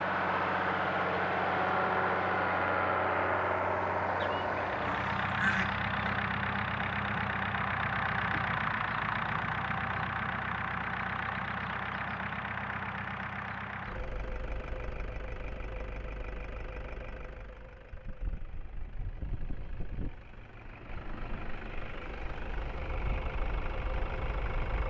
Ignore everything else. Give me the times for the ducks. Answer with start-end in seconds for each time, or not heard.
4.2-6.2.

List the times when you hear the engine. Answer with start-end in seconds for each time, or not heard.
0.0-24.8.